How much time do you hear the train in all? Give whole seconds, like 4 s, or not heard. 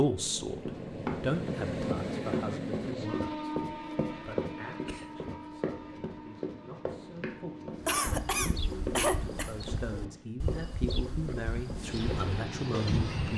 12 s.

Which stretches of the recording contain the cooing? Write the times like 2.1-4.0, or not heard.
7.8-13.3.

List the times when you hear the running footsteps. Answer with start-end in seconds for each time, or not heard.
0.7-12.2.